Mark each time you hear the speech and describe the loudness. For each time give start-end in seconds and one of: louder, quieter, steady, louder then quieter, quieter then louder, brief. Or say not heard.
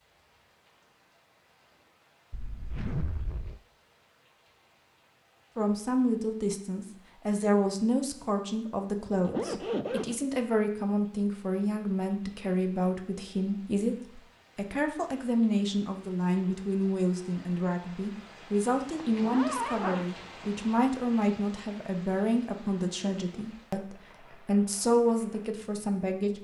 5.5-26.3 steady.